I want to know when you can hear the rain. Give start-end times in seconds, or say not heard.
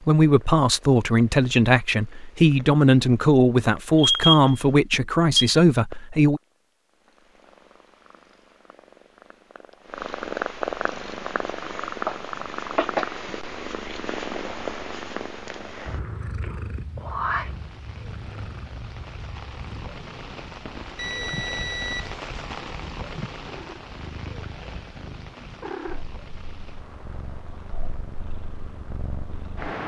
10.9-29.7.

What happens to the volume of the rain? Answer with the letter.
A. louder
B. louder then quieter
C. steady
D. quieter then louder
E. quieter
B.